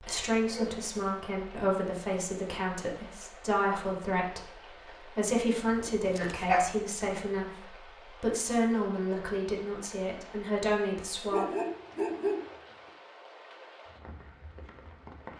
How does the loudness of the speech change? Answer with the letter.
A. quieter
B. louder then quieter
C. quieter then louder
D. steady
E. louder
D.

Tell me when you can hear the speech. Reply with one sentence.
The speech can be heard from 0.0 to 11.5 s.